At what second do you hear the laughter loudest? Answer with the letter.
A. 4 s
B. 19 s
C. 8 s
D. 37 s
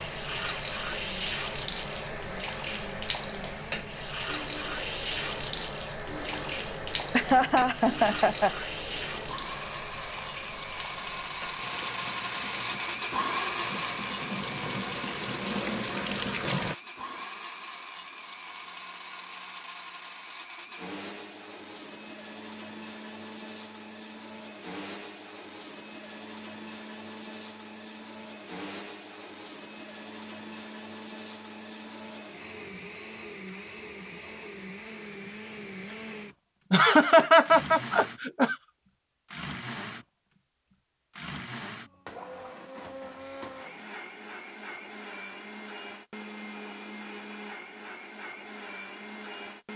D.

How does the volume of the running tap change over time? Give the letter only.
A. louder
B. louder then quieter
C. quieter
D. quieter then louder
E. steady
D.